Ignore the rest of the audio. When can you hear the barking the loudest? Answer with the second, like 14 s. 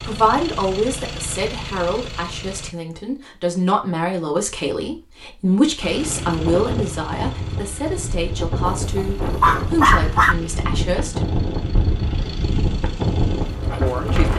10 s.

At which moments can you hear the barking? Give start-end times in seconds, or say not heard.
8.7-10.3.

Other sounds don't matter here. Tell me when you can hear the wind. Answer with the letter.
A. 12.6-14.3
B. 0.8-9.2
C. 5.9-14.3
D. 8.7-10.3
C.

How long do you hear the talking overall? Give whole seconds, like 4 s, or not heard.
12 s.